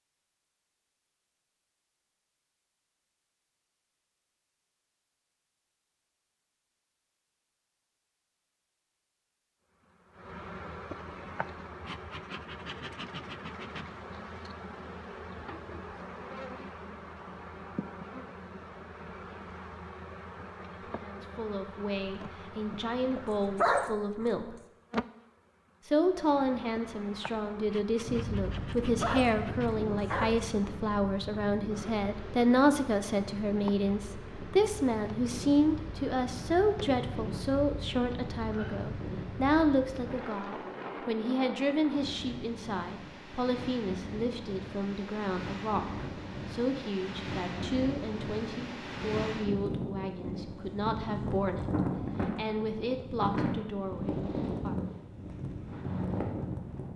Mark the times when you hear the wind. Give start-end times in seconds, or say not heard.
28.0-56.9.